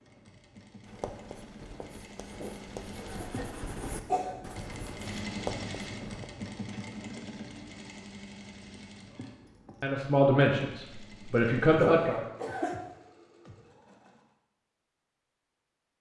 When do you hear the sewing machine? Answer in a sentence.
The sewing machine can be heard from 0.0 to 14.3 s.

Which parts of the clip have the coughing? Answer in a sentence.
The coughing can be heard from 2.4 to 4.3 s and from 11.8 to 12.8 s.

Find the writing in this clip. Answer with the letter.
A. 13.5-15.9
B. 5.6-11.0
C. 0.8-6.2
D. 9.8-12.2
C.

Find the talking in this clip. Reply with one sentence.
The talking can be heard from 9.8 to 12.2 s.